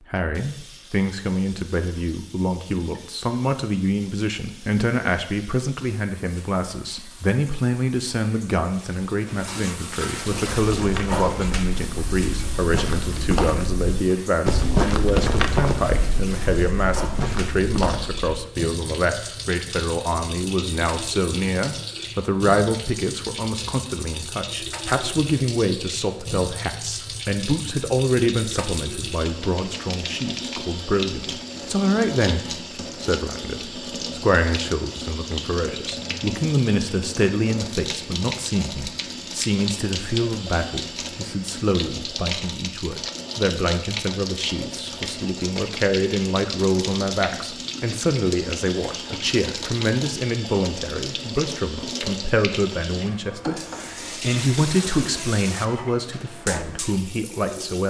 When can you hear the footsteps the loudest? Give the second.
15 s.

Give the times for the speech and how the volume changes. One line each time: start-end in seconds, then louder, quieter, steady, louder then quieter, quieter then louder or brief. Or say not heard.
0.1-57.8 steady.